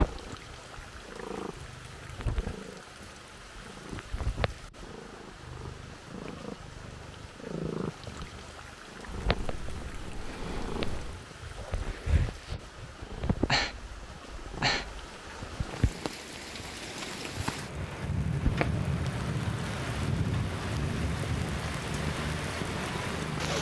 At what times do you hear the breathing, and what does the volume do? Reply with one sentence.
The breathing can be heard from 9.3 to 15.1 s, getting louder then quieter.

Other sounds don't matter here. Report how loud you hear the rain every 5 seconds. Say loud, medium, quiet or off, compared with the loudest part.
quiet, quiet, quiet, loud, loud.